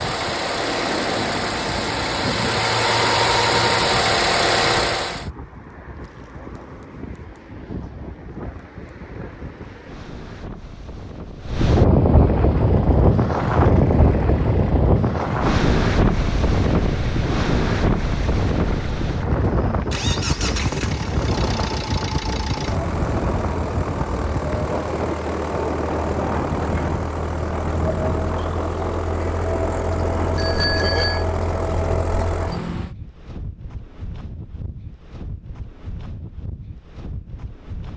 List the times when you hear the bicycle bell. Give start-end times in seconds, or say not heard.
30.4-31.2.